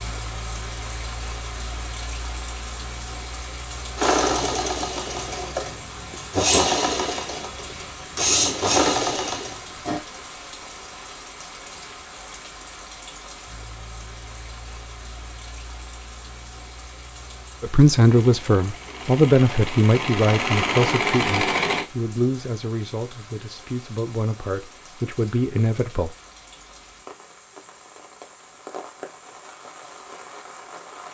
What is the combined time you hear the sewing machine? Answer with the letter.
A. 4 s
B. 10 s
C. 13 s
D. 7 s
B.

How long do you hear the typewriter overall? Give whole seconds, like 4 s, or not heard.
not heard.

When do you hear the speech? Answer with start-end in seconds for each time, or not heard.
17.6-26.1.